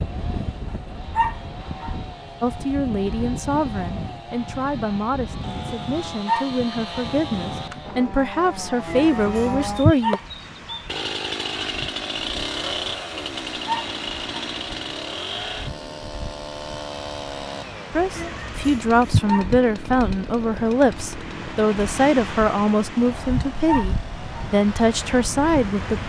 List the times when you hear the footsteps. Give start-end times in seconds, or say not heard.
not heard.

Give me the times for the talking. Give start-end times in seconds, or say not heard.
2.4-10.2, 17.9-26.0.